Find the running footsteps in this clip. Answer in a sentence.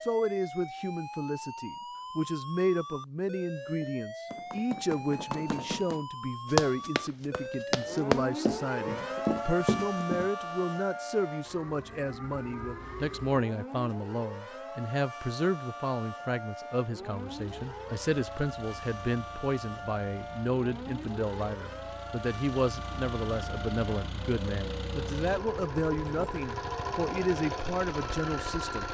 The running footsteps can be heard from 3.8 to 10.3 s.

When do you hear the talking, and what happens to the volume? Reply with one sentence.
The talking can be heard from 0.0 to 28.9 s, at a steady volume.